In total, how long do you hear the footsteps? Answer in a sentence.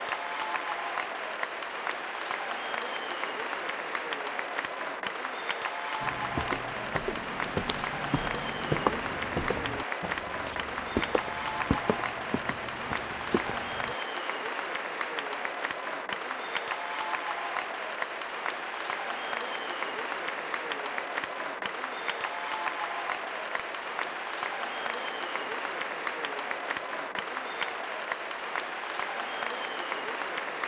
The footsteps can be heard for 8 seconds in total.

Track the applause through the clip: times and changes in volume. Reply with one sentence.
The applause can be heard from 0.0 to 30.6 s, at a steady volume.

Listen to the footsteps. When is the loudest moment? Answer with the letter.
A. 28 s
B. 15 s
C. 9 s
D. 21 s
C.